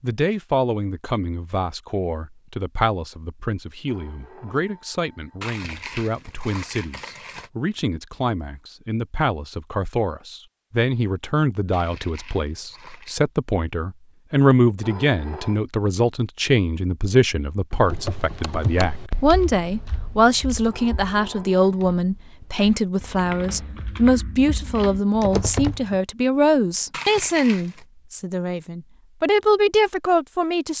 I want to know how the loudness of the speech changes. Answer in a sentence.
The loudness of the speech goes up.